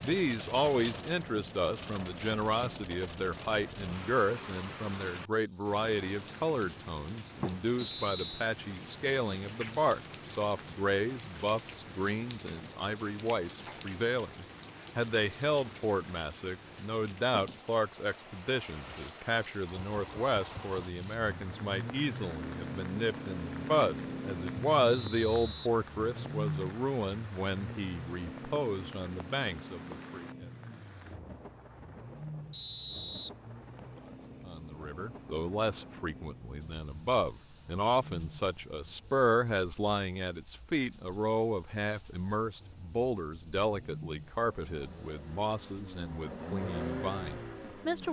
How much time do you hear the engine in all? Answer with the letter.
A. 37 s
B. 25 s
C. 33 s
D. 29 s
B.